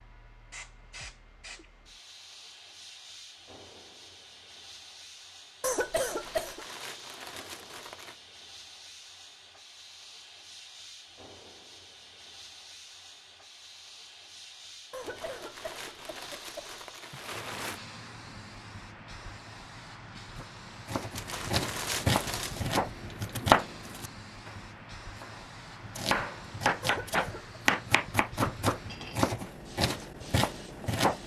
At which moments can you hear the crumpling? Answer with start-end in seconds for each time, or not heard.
6.0-8.2, 15.0-17.8, 21.1-22.6.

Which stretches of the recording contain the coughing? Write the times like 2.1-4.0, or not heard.
5.6-6.7, 14.9-16.8, 26.8-27.6.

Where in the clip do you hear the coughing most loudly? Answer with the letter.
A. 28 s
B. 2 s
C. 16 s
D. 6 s
D.